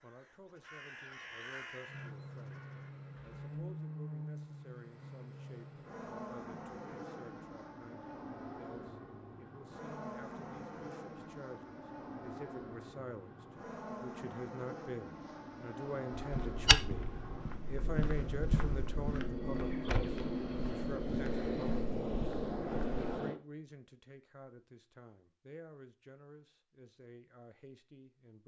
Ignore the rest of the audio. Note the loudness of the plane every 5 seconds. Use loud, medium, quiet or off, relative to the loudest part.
medium, medium, medium, medium, loud, off.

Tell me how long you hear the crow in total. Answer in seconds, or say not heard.
3 s.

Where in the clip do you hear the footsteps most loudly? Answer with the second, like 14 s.
17 s.